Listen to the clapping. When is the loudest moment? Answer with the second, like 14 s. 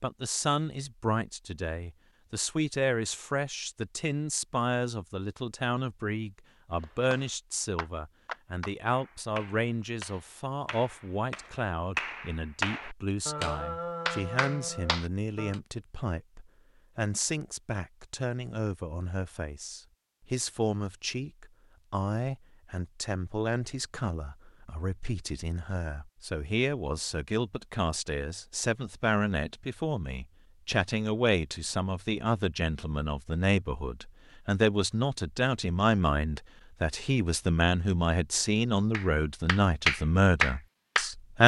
40 s.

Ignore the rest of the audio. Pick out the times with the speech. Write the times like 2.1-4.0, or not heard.
0.0-41.4.